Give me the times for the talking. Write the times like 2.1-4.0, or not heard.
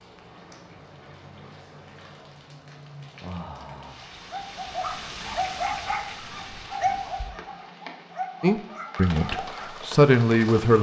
8.4-10.7.